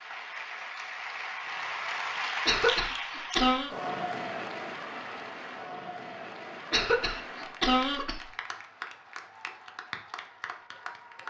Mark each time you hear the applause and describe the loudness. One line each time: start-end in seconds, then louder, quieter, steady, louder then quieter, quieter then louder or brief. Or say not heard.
0.0-11.2 quieter.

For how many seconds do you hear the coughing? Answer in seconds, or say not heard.
3 s.